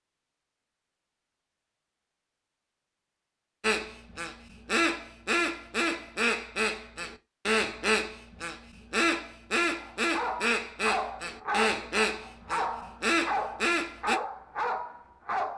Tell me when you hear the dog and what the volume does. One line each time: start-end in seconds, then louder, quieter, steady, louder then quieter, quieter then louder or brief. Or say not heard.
9.8-15.5 steady.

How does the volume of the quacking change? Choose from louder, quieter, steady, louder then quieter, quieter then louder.
steady.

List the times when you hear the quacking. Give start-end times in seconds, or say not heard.
3.6-14.2.